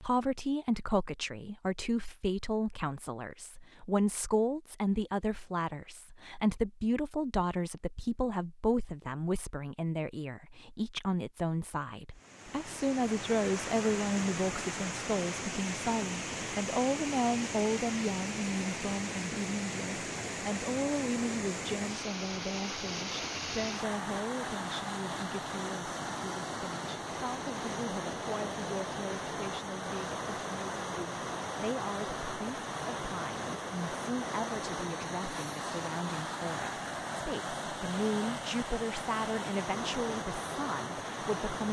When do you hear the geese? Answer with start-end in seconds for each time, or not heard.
not heard.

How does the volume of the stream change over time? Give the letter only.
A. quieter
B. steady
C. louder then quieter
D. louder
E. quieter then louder
B.